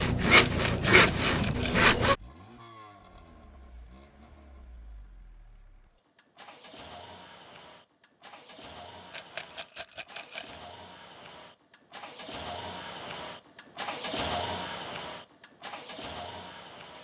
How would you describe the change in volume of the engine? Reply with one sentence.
The volume of the engine goes up.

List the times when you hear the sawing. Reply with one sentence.
The sawing can be heard from 0.0 to 2.1 s.